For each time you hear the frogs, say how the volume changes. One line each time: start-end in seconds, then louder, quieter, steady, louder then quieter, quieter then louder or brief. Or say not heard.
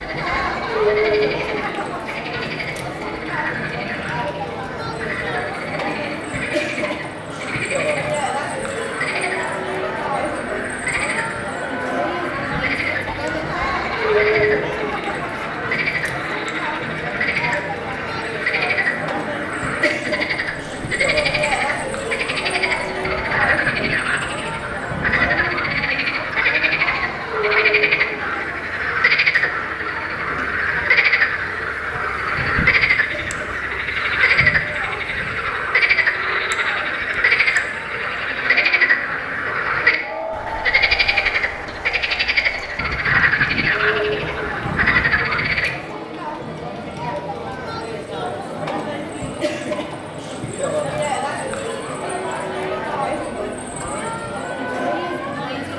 0.0-45.8 louder.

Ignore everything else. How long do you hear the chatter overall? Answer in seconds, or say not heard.
56 s.